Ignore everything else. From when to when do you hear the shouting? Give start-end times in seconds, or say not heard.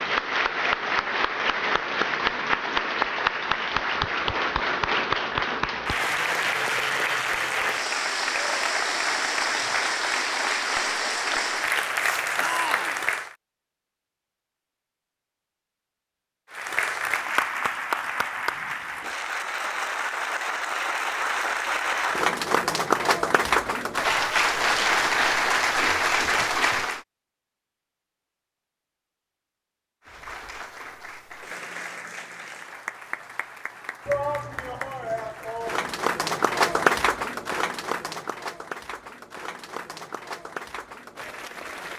12.3-13.0, 34.0-36.0.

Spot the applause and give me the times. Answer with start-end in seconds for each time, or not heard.
0.0-13.3, 16.5-27.0, 30.1-41.9.